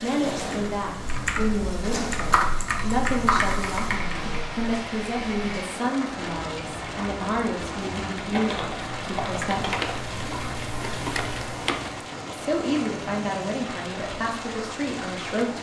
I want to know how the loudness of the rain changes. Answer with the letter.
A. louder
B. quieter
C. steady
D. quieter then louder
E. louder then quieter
C.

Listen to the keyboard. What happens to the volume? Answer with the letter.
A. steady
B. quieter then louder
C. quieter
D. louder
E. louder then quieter
B.